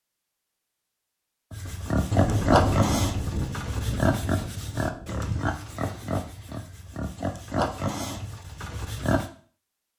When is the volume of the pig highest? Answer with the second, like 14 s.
3 s.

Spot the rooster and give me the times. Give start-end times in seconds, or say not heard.
not heard.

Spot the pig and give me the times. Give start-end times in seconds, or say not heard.
1.5-9.2.